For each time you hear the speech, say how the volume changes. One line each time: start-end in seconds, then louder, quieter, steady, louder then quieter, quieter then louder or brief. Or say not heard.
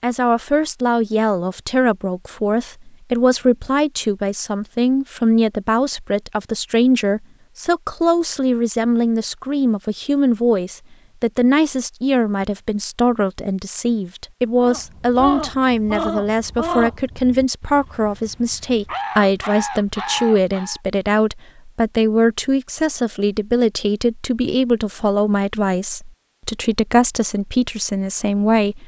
0.0-28.8 steady.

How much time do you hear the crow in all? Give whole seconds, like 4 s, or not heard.
6 s.